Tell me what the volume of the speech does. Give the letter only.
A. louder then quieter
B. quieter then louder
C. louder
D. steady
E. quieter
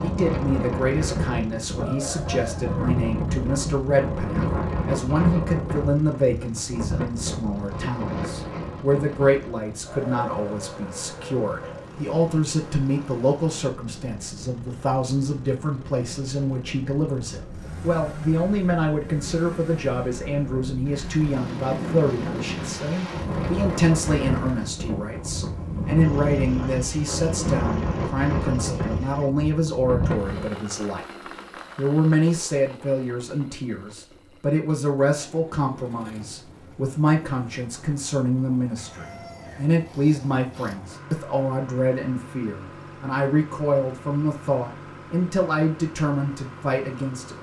D.